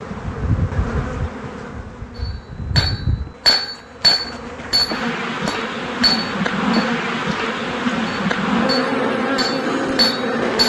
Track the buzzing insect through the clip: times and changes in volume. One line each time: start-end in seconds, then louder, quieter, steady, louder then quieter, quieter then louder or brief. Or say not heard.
0.0-10.6 louder.